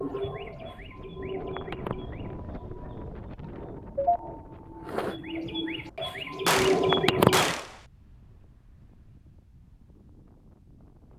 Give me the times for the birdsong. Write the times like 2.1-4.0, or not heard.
0.0-7.5.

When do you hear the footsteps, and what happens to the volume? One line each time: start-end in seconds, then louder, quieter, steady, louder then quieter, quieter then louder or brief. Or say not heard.
not heard.